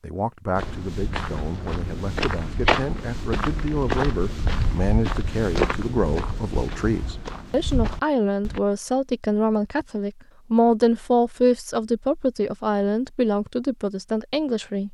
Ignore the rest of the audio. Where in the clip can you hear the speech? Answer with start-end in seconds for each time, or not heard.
0.0-14.8.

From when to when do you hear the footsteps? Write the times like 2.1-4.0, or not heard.
0.6-8.6.